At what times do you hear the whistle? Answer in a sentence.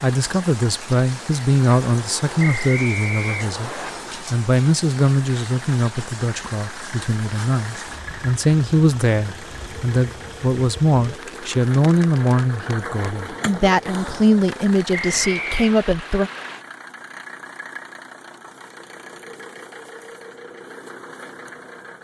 The whistle can be heard from 2.4 to 3.9 s and from 14.9 to 15.8 s.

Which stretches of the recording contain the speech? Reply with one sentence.
The speech can be heard from 0.0 to 16.3 s.